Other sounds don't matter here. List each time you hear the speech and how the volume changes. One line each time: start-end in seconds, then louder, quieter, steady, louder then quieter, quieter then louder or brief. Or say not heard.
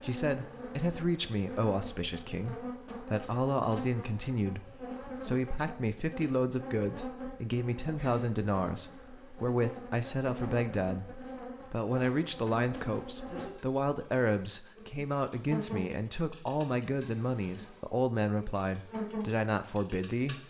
0.0-20.4 steady.